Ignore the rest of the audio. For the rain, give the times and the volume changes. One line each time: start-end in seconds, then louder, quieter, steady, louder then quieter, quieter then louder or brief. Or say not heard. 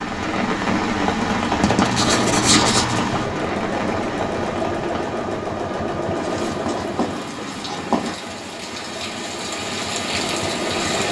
0.0-11.0 quieter then louder.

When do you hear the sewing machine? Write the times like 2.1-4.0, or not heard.
2.0-11.0.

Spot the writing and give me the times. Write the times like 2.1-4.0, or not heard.
1.6-3.0, 6.2-8.2.